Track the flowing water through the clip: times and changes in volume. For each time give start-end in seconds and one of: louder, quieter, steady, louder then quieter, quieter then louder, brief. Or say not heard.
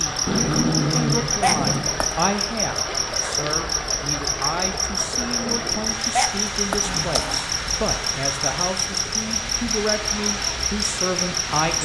0.0-11.8 steady.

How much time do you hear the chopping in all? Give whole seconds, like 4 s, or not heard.
not heard.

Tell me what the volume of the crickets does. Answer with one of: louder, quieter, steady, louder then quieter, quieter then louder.
steady.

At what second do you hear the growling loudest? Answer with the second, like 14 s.
1 s.